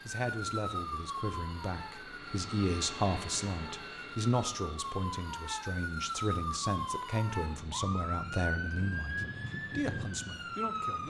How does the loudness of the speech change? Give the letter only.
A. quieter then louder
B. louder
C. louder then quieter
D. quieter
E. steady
C.